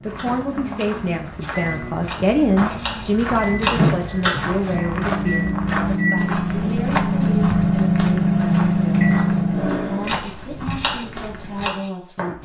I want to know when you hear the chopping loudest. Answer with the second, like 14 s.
4 s.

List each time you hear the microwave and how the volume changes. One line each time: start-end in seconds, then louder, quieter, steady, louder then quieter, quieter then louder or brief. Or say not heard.
0.0-10.2 louder.